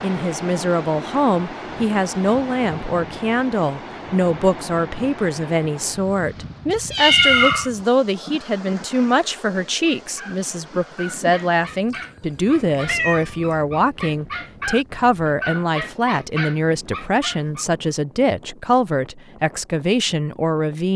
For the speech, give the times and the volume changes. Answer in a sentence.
The speech can be heard from 0.0 to 20.9 s, at a steady volume.